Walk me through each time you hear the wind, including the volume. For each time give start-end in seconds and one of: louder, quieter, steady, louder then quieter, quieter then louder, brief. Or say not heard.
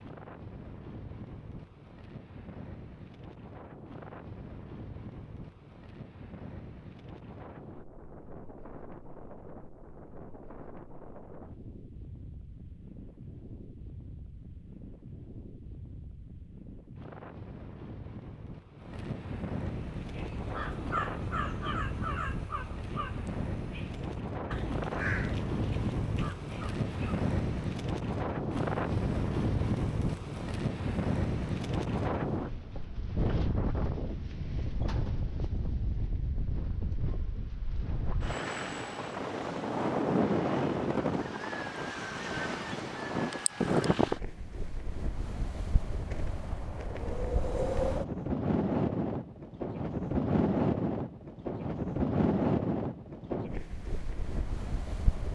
0.0-55.3 louder.